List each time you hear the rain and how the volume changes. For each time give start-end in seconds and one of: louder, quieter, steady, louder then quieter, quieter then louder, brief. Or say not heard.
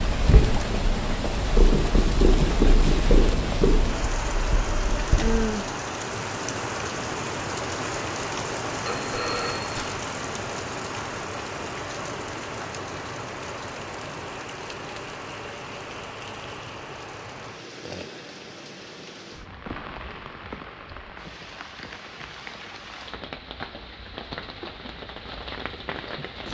0.0-26.5 quieter.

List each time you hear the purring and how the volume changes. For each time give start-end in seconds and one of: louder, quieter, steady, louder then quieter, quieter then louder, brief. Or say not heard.
0.1-5.5 louder then quieter.